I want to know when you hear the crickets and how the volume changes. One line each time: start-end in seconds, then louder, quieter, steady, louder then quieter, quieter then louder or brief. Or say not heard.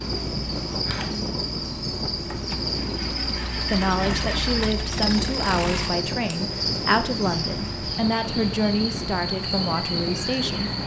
0.0-10.8 steady.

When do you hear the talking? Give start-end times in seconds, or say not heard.
3.7-10.7.